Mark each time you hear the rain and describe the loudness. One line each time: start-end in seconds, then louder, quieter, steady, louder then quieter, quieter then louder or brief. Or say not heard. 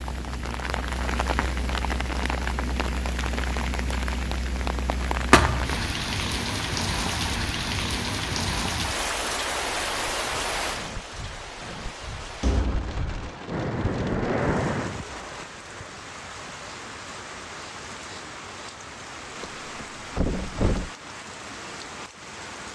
0.0-22.7 quieter.